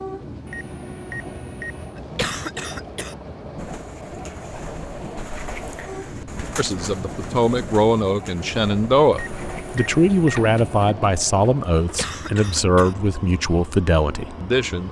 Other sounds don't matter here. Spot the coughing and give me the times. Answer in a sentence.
The coughing can be heard from 1.9 to 3.1 s and from 11.8 to 12.9 s.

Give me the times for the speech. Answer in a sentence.
The speech can be heard from 6.5 to 14.8 s.